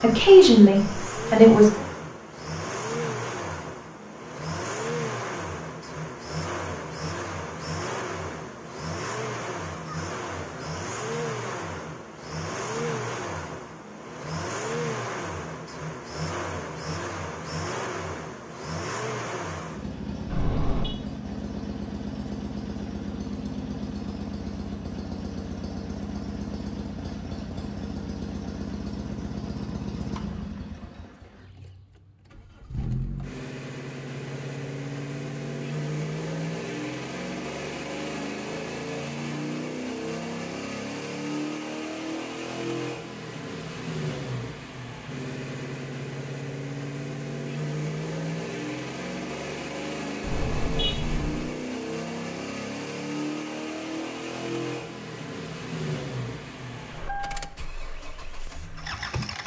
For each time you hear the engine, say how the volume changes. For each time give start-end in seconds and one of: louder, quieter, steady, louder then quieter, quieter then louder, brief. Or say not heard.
0.0-59.4 steady.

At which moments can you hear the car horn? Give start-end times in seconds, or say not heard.
20.2-20.9, 50.2-51.5.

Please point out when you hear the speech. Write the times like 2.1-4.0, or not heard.
0.0-1.8.